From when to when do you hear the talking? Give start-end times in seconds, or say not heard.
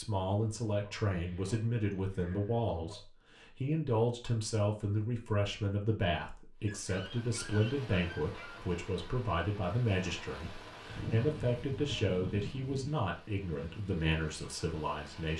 0.0-15.3.